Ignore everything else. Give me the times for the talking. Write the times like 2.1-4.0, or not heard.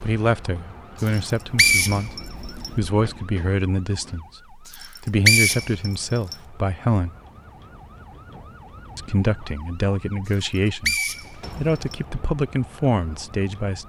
0.0-7.2, 8.9-13.8.